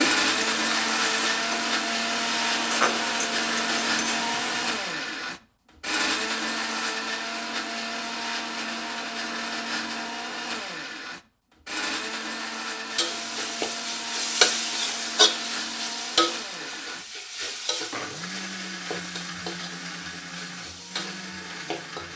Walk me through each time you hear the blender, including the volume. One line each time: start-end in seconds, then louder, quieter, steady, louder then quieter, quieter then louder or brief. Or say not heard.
0.0-22.1 quieter.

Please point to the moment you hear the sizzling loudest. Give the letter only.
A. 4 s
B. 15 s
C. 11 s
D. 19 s
B.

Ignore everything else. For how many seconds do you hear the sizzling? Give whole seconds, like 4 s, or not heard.
14 s.